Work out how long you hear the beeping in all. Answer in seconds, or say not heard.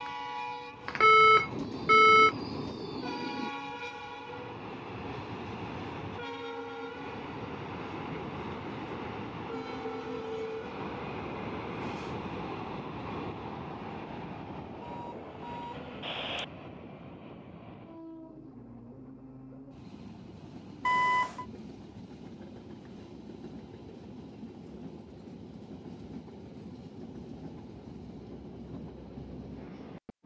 4 s.